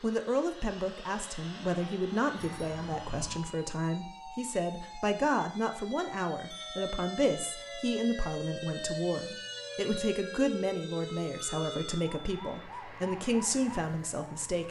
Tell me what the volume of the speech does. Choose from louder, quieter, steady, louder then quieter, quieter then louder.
steady.